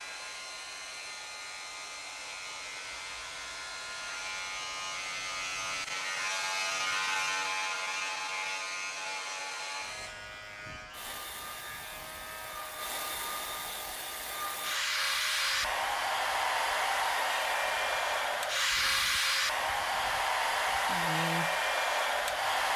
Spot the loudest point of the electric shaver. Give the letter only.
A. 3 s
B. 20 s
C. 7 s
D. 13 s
C.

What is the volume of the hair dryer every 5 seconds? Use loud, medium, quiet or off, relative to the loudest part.
quiet, quiet, medium, loud, loud.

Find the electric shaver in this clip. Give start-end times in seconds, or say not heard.
0.0-22.7.